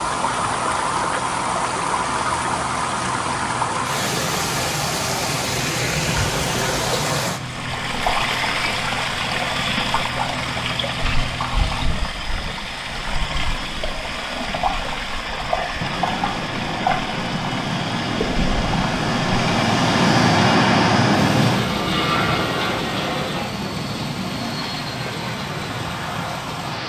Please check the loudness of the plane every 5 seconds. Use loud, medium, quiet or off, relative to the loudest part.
quiet, quiet, quiet, loud, loud, medium.